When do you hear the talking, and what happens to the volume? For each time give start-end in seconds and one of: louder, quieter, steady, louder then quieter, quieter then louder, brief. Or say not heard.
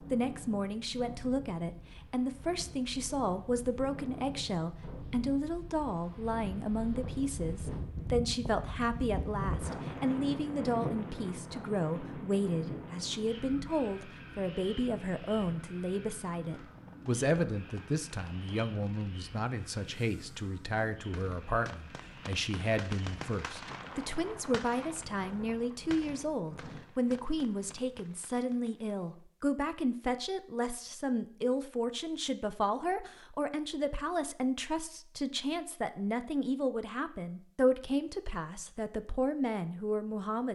0.1-40.4 steady.